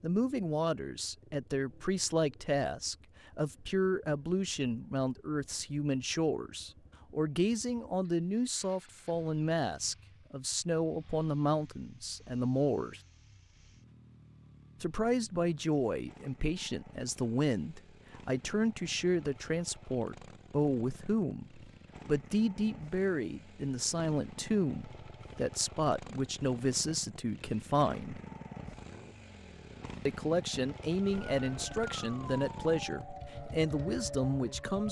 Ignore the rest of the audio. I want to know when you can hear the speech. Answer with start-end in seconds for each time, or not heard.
0.0-13.0, 14.8-28.2, 30.1-34.8.